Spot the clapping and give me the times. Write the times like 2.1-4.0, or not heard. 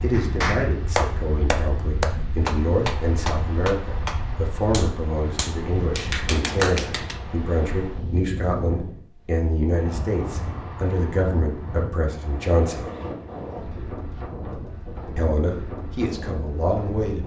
0.1-7.2.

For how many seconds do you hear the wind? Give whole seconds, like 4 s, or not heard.
17 s.